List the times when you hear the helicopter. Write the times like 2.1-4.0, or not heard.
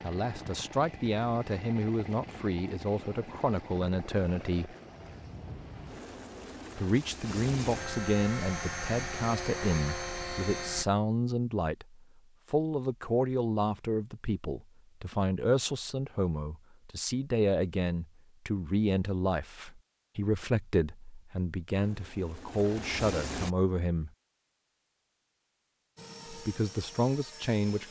0.0-10.8, 21.6-23.5, 25.9-27.8.